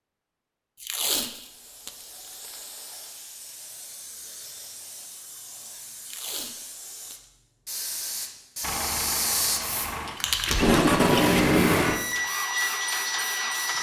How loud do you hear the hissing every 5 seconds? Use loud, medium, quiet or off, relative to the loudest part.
medium, loud, loud.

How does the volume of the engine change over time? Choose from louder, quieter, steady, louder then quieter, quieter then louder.
louder.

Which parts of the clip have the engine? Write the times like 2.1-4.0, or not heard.
8.6-13.7.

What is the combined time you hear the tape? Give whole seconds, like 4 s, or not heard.
4 s.